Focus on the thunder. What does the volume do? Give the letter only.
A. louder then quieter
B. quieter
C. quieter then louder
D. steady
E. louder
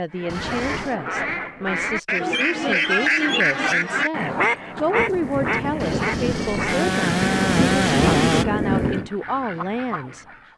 E.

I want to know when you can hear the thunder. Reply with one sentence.
You can hear the thunder from 5.0 to 9.1 s.